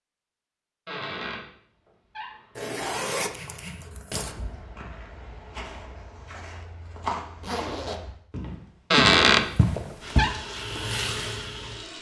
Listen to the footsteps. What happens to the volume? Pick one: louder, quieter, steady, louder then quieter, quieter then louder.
louder.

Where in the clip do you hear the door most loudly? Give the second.
9 s.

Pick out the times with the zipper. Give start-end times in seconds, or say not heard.
2.5-4.3, 7.4-8.1.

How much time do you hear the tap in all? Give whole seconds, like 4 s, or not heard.
2 s.